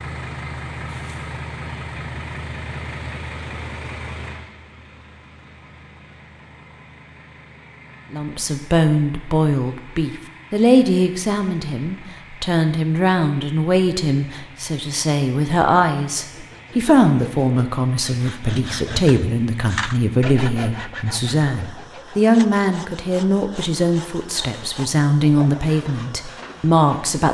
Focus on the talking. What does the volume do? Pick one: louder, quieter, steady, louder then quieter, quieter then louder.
steady.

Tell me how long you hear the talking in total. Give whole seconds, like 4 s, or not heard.
19 s.